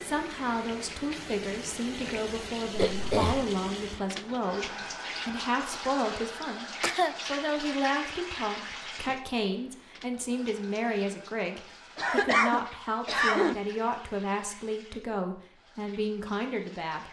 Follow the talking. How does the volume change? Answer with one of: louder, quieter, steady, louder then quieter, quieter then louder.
steady.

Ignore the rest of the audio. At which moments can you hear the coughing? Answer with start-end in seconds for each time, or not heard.
2.7-3.5, 6.4-7.2, 11.9-13.6.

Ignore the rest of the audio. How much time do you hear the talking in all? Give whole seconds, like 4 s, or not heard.
17 s.